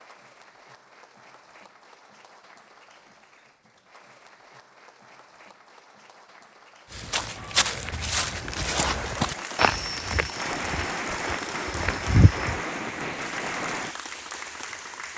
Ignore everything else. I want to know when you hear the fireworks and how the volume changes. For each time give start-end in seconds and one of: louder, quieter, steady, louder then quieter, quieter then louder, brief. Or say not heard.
7.2-13.9 louder.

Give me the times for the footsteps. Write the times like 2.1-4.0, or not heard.
6.9-12.6.